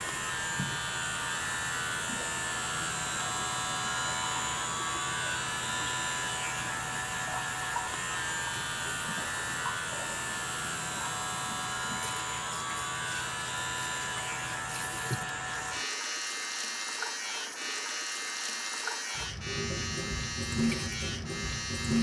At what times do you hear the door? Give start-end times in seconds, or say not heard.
not heard.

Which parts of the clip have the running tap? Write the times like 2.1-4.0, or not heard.
0.0-21.9.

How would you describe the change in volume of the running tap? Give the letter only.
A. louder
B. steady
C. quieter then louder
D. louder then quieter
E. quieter
A.